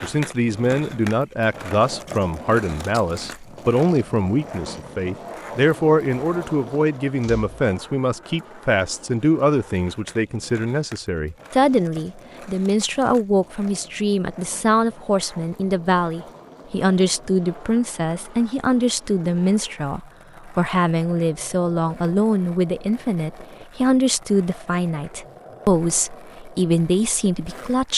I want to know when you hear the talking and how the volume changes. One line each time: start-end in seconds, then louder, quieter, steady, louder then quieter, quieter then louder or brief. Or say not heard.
0.0-27.9 steady.